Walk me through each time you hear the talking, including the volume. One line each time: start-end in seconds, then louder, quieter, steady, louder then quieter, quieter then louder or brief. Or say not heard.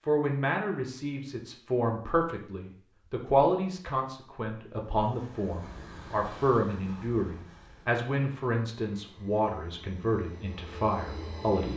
0.1-11.7 steady.